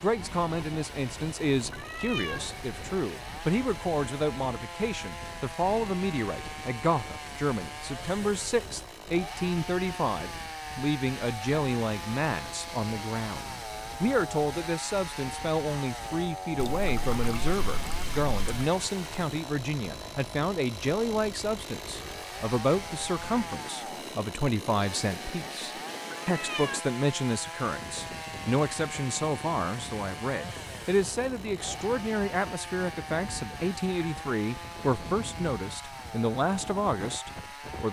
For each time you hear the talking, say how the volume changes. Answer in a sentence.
The talking can be heard from 0.0 to 37.8 s, at a steady volume.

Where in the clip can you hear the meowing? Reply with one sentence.
The meowing can be heard from 1.7 to 2.5 s and from 26.1 to 26.9 s.